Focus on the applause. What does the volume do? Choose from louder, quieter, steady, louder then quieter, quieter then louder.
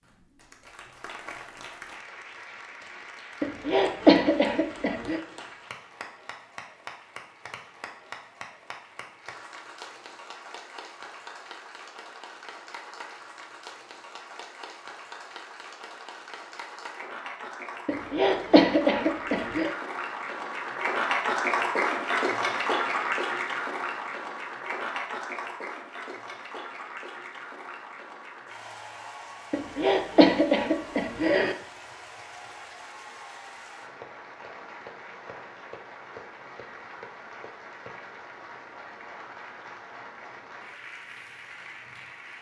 louder then quieter.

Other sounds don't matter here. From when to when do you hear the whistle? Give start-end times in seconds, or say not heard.
not heard.